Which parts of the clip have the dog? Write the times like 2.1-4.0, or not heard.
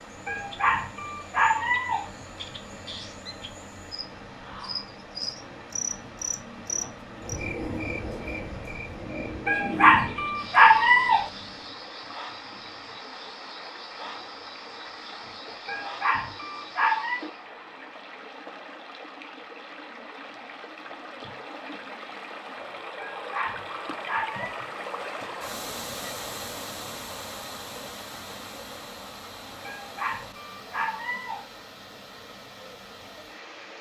0.2-2.1, 9.4-11.3, 15.7-17.2, 22.9-24.6, 29.6-31.4.